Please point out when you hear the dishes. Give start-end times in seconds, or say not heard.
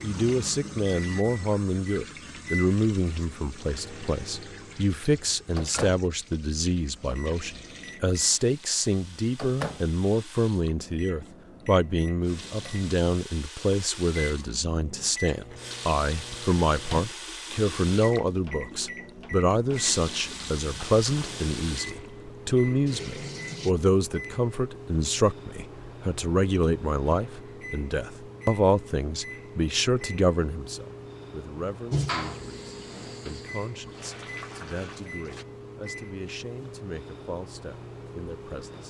not heard.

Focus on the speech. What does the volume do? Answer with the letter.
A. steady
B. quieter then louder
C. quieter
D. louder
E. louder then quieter
C.